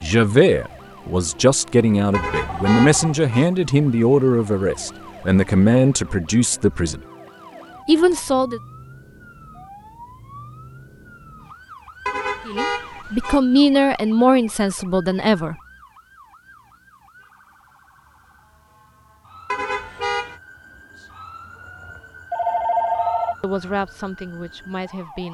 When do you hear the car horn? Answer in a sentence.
The car horn can be heard from 2.1 to 3.5 s, from 12.1 to 13.4 s and from 19.5 to 20.4 s.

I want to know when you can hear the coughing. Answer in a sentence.
The coughing can't be heard in this clip.